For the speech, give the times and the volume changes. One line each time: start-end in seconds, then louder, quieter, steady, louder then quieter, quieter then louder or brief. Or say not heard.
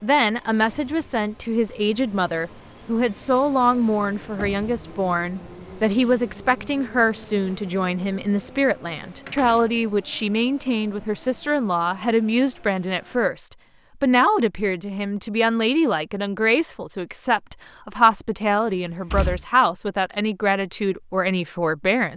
0.0-22.1 steady.